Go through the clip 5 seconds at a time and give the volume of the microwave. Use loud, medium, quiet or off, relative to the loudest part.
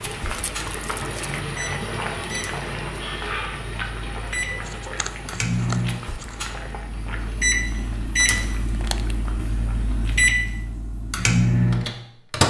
quiet, medium, loud.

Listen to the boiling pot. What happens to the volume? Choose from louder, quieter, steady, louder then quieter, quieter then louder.
quieter.